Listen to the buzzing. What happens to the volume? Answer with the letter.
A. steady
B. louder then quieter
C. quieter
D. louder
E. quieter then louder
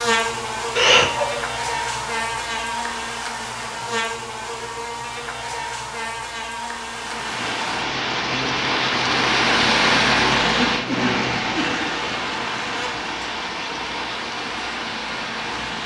C.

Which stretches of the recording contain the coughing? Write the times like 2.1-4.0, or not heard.
0.8-1.3, 10.4-11.9.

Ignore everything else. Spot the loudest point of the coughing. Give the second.
1 s.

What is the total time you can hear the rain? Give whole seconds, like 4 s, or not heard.
9 s.